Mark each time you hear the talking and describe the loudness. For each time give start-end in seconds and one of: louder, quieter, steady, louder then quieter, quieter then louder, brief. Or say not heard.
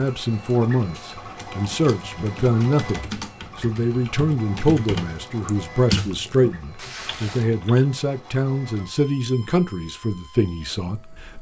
0.0-11.3 steady.